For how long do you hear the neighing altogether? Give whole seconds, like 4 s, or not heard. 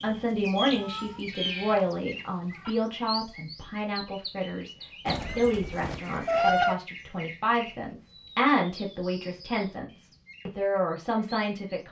2 s.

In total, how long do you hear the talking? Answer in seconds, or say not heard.
12 s.